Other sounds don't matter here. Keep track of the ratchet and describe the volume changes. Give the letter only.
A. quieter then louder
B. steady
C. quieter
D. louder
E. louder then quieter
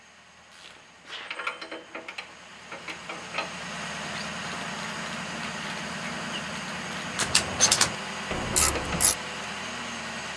A.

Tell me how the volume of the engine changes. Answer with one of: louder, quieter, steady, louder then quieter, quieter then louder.
louder.